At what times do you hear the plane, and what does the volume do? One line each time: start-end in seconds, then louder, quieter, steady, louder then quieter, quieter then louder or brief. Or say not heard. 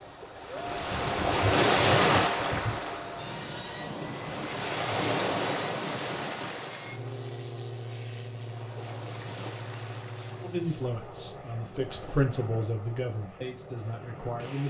0.0-14.6 quieter.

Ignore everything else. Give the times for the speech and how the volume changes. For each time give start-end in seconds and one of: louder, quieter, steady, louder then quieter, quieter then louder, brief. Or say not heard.
10.4-14.6 louder then quieter.